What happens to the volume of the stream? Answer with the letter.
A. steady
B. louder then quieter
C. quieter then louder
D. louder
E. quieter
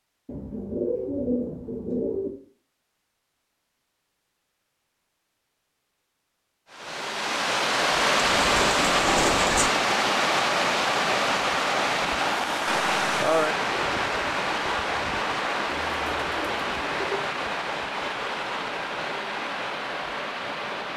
E.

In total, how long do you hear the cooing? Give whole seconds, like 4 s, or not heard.
5 s.